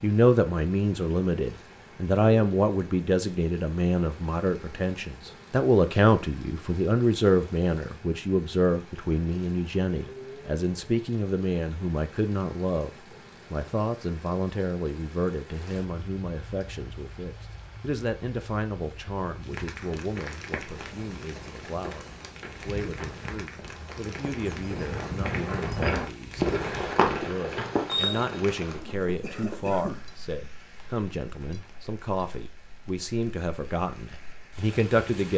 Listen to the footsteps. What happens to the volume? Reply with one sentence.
The volume of the footsteps goes up, then down.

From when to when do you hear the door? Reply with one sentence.
You can hear the door from 27.6 to 28.4 s.